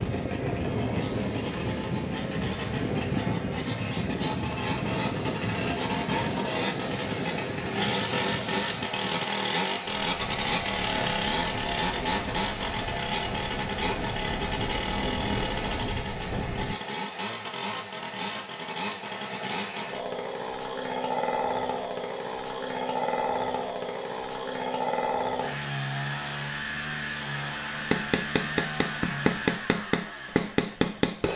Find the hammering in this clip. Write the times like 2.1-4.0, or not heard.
27.8-31.3.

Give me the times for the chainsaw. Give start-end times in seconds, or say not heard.
0.0-31.3.